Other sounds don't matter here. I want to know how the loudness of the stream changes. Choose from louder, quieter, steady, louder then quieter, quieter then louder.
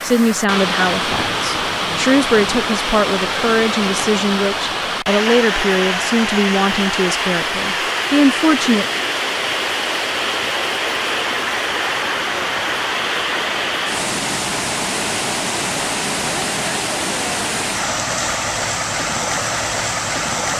steady.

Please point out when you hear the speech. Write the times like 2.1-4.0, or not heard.
0.0-8.9.